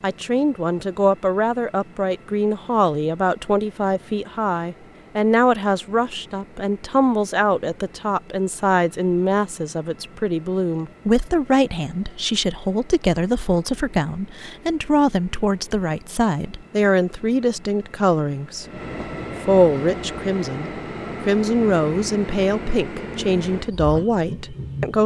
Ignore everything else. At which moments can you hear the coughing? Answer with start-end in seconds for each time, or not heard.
not heard.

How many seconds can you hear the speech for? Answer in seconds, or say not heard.
24 s.